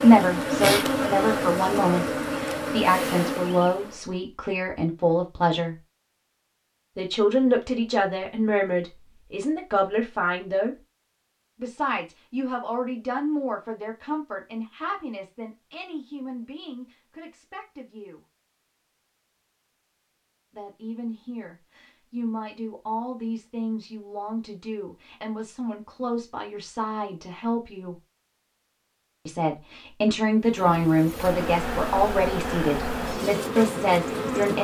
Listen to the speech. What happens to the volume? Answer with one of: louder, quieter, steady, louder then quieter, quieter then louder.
quieter then louder.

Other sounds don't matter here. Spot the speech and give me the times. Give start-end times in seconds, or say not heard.
0.0-5.8, 7.0-10.8, 11.6-18.2, 20.5-27.9, 29.2-34.5.